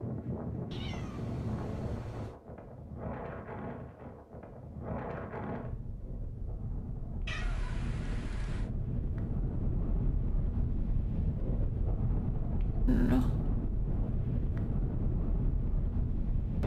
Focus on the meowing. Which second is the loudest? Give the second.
13 s.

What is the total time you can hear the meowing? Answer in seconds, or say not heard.
4 s.